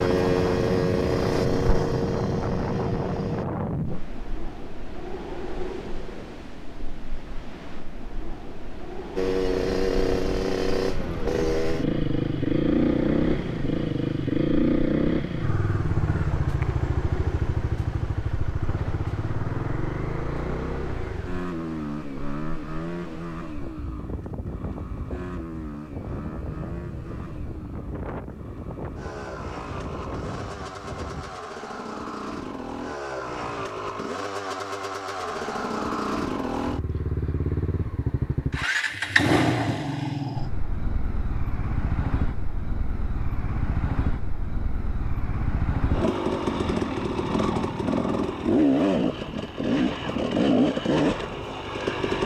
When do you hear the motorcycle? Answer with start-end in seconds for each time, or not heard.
0.0-3.5, 9.2-52.2.